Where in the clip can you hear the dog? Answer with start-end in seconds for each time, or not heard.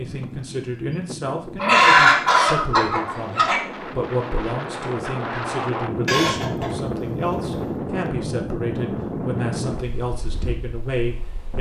not heard.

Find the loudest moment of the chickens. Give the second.
2 s.